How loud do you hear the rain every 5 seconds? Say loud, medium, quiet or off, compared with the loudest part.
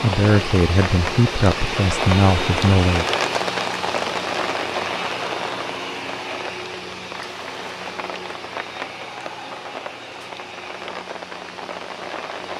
loud, medium, medium.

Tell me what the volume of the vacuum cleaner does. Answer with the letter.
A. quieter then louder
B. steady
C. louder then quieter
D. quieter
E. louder
D.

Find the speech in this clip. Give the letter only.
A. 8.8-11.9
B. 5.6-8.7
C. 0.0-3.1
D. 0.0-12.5
C.